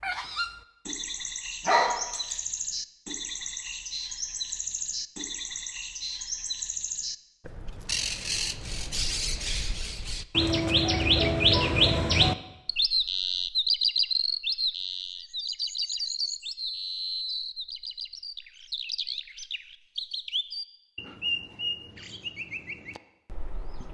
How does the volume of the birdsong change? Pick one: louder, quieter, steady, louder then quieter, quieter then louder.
louder then quieter.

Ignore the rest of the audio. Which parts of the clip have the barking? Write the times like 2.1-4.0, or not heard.
1.6-2.4.